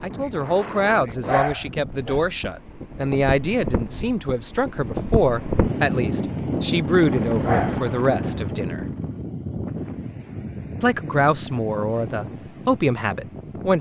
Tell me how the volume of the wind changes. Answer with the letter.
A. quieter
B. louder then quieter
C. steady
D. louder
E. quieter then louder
B.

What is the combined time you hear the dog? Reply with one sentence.
The dog can be heard for 2 seconds in total.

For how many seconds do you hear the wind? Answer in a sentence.
You can hear the wind for 14 seconds altogether.